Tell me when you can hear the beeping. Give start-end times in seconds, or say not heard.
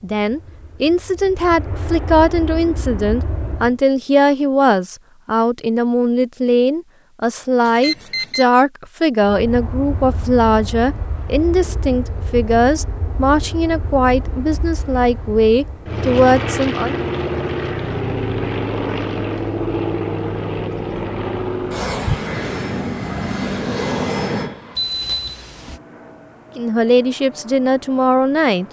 7.6-8.4, 24.8-25.8.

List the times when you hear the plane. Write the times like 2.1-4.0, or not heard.
0.0-3.8, 9.2-28.6.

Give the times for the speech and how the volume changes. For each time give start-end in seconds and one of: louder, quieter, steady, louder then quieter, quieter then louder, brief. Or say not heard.
0.0-16.9 steady
26.6-28.6 brief.